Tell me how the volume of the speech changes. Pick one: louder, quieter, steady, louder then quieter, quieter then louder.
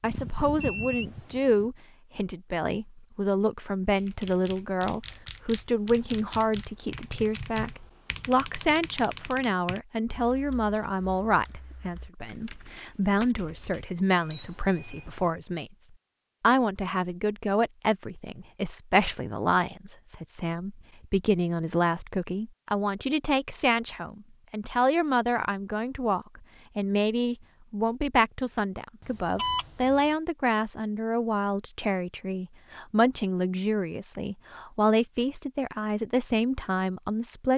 steady.